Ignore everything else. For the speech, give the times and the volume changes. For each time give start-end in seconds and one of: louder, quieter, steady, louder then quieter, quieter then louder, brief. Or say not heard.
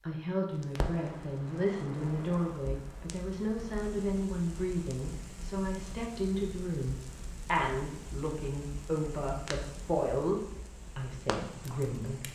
0.0-12.2 steady.